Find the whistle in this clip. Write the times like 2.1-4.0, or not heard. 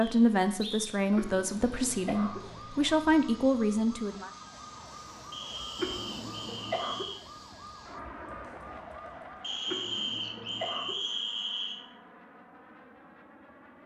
0.0-1.0, 5.3-7.2, 9.4-11.8.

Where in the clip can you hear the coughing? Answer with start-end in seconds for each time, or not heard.
1.1-2.4, 5.8-7.0, 9.7-10.9.